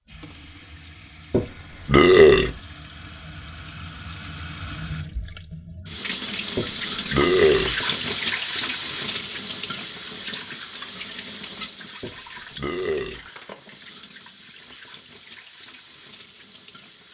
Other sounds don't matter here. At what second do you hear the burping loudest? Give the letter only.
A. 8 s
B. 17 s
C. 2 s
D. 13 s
C.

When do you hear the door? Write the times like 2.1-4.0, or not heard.
not heard.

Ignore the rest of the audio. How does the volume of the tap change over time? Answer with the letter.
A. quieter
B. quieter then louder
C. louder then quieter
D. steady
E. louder
C.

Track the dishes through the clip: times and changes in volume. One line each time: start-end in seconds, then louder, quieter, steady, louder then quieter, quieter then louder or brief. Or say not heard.
not heard.